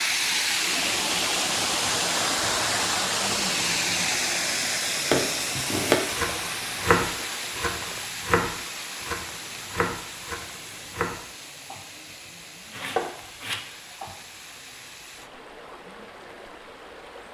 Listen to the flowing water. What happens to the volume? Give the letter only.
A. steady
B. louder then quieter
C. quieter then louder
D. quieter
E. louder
D.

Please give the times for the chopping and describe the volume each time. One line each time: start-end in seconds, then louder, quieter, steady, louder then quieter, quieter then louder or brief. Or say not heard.
5.1-11.8 quieter
12.7-14.2 brief.